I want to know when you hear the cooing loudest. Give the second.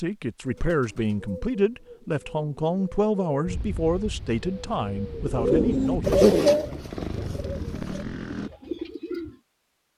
6 s.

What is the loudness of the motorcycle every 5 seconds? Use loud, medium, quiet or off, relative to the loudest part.
off, loud.